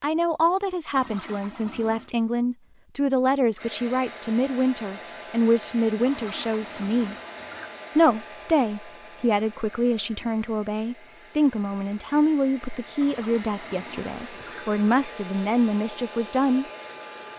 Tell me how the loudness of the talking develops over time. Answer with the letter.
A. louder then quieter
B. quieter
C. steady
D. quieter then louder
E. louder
C.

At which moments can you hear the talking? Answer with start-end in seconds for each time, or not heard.
0.0-7.2, 8.0-16.6.